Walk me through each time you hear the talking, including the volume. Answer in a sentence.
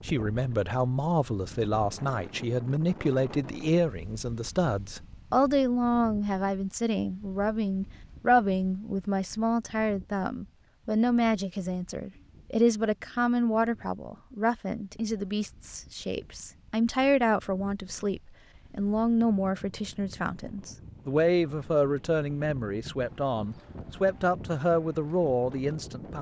The talking can be heard from 0.0 to 26.1 s, at a steady volume.